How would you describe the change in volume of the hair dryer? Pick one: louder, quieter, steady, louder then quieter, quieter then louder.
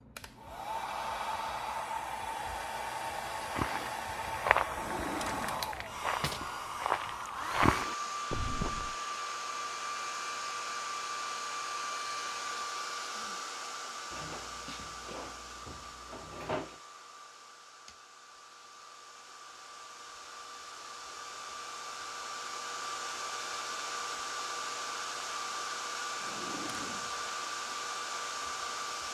quieter then louder.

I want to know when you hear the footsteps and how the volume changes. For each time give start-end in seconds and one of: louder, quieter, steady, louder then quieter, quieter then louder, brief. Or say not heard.
3.5-8.9 quieter then louder.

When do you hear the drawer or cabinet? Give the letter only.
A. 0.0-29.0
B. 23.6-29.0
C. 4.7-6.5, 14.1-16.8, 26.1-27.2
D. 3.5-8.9
C.